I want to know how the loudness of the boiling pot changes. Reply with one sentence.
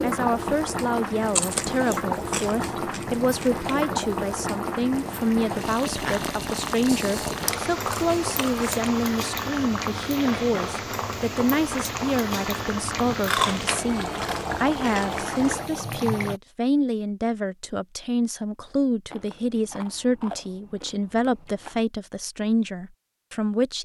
The volume of the boiling pot stays about the same.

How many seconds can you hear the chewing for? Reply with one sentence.
You can hear the chewing for 9 seconds altogether.